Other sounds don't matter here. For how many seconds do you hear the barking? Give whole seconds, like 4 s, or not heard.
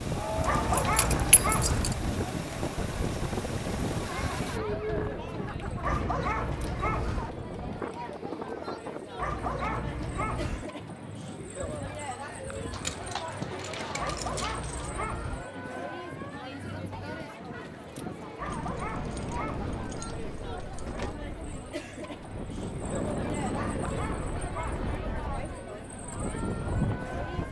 9 s.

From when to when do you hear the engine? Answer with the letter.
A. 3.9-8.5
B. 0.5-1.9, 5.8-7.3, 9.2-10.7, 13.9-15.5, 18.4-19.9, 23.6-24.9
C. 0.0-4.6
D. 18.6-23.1
C.